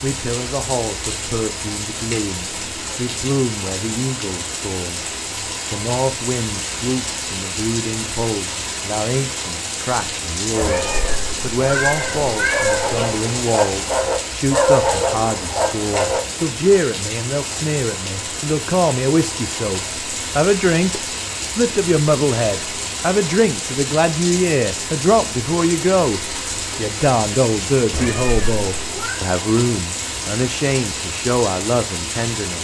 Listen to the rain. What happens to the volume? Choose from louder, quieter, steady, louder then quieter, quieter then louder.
steady.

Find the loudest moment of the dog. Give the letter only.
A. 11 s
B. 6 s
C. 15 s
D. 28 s
C.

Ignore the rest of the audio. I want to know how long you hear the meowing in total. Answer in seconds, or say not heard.
4 s.